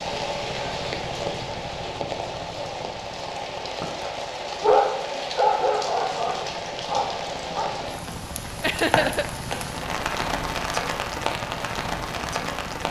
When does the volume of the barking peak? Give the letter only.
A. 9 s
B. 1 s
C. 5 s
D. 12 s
C.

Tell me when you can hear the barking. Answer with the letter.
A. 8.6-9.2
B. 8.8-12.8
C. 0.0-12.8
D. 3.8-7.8
D.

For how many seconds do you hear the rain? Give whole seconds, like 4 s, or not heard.
13 s.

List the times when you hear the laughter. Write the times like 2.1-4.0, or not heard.
8.6-9.2.